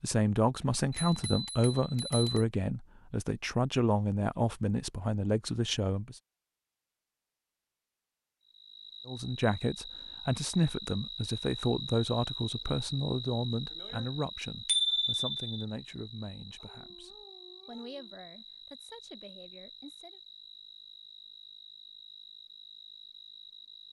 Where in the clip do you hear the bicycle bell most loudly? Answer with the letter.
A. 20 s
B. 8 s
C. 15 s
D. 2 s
C.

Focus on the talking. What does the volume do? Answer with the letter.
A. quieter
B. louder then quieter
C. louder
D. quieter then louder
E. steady
A.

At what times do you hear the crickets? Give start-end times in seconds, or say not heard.
8.4-23.8.